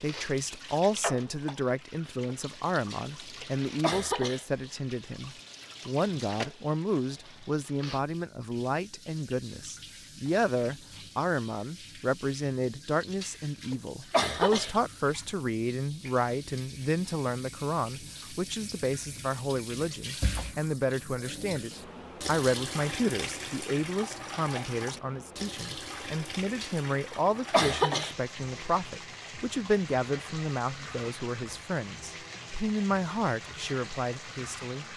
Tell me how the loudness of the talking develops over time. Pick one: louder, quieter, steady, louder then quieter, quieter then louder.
steady.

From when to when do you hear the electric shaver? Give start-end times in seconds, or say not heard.
not heard.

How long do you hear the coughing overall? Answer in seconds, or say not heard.
5 s.